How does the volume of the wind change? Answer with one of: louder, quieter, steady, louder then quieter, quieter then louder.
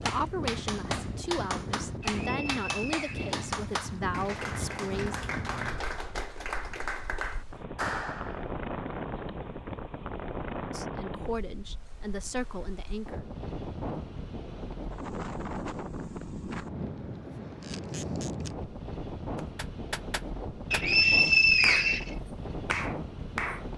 steady.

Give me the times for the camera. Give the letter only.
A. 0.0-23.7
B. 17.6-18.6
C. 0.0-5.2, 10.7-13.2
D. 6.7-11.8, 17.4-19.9
B.